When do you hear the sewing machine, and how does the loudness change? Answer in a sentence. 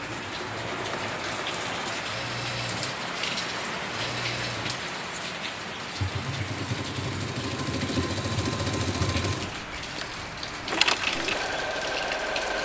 The sewing machine can be heard from 0.0 to 12.5 s, getting louder.